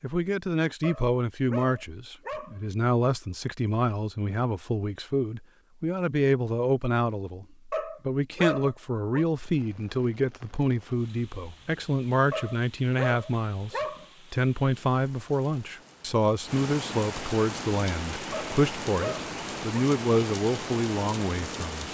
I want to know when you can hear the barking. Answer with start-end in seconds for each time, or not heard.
0.8-2.6, 7.7-9.2, 12.3-14.1, 18.3-19.9.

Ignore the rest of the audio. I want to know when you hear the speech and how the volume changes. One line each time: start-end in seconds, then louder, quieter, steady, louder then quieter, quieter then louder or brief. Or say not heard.
0.0-21.8 steady.